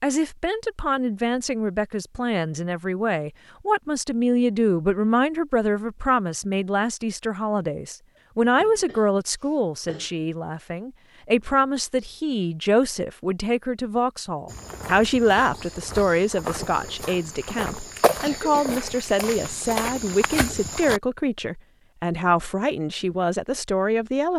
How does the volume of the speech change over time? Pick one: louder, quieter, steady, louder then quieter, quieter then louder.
steady.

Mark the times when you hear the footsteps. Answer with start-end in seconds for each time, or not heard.
14.4-21.0.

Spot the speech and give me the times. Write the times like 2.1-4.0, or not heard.
0.0-24.3.